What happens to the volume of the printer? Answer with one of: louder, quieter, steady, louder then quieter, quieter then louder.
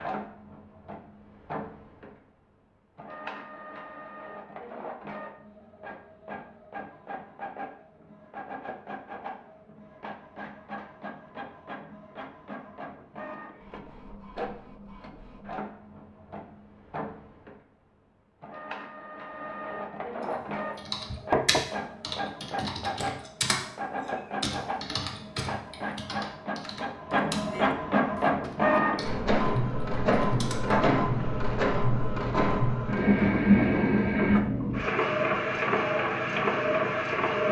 louder.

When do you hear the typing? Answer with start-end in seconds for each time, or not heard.
20.8-23.6, 24.4-30.8.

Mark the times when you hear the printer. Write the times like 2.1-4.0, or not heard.
0.0-37.4.